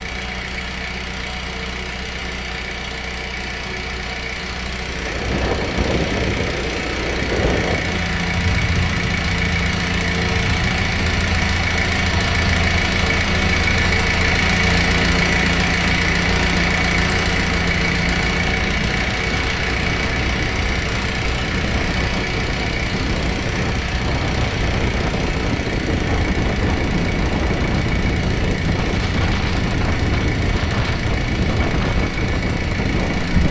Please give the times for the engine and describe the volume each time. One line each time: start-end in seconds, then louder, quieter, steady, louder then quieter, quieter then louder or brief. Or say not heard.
0.0-33.4 louder then quieter.